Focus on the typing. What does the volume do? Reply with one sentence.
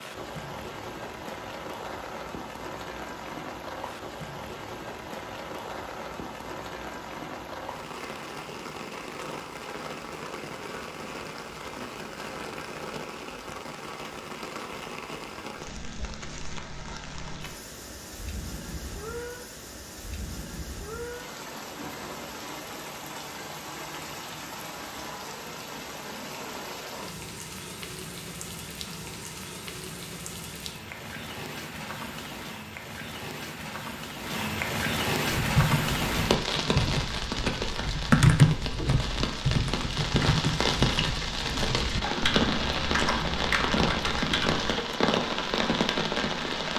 The loudness of the typing goes up, then down.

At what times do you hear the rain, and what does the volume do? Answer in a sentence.
The rain can be heard from 0.0 to 46.7 s, getting louder.